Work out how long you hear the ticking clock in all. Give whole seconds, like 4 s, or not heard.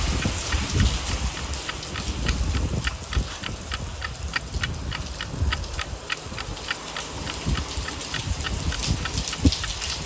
10 s.